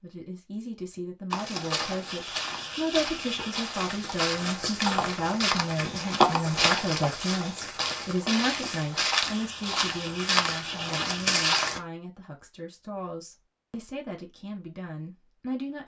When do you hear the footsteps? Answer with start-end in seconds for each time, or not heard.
1.3-11.8.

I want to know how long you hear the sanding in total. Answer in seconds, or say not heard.
4 s.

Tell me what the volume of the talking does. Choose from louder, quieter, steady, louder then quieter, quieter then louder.
quieter.